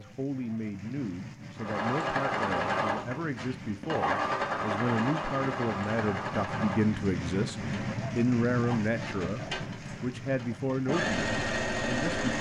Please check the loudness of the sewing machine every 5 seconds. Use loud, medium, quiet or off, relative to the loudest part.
loud, medium, loud.